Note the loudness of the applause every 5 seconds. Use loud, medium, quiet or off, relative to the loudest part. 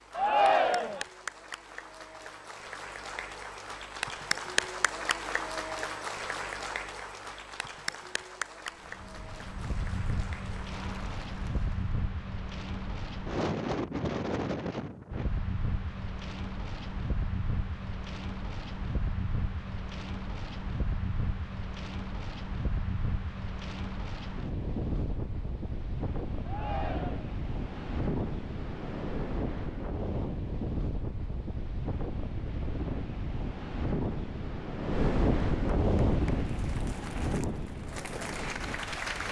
loud, loud, medium, off, off, off, off, loud.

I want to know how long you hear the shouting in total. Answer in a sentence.
The shouting can be heard for 2 seconds in total.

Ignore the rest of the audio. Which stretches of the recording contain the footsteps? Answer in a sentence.
The footsteps can't be heard in this clip.